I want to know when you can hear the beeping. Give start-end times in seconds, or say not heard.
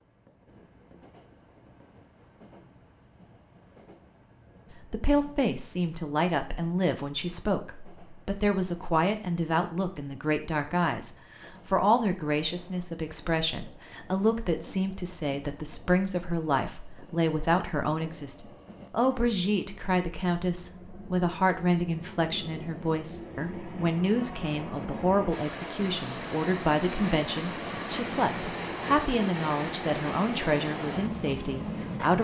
not heard.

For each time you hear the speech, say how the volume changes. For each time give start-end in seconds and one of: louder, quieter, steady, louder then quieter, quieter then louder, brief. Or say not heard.
4.9-32.1 steady.